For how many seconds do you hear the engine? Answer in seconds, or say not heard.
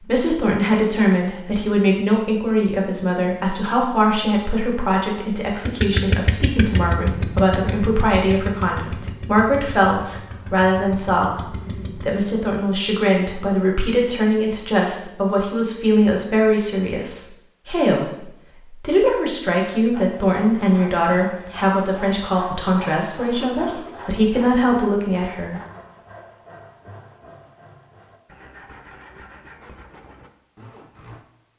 7 s.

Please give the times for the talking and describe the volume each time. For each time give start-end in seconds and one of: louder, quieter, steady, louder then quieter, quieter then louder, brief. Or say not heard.
0.0-25.6 steady.